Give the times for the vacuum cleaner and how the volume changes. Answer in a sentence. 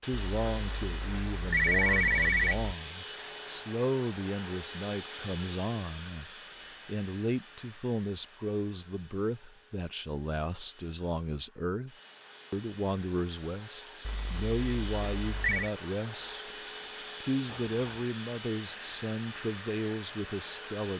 The vacuum cleaner can be heard from 0.0 to 20.9 s, getting quieter then louder.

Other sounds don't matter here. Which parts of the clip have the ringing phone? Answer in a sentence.
The ringing phone can be heard from 0.1 to 2.8 s and from 14.1 to 15.7 s.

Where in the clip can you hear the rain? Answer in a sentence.
You can't hear the rain here.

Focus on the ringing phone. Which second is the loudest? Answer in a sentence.
The loudest moment of the ringing phone is at 2 seconds.